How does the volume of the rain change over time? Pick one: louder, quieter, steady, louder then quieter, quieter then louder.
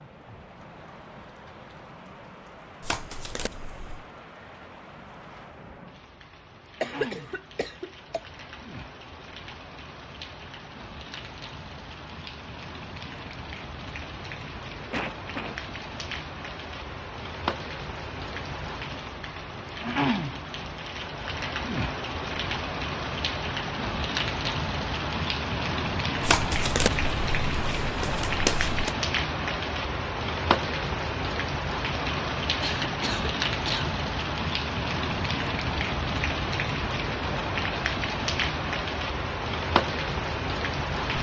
louder.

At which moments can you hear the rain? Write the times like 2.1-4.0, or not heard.
0.0-41.1.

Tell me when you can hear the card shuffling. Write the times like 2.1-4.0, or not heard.
2.8-4.0, 26.2-28.9.